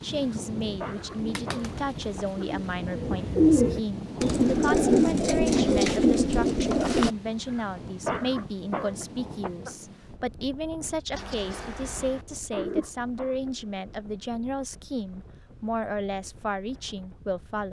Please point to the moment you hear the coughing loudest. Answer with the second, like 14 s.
8 s.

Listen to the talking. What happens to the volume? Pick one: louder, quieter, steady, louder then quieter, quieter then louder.
steady.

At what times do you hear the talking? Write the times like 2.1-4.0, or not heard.
0.0-17.6.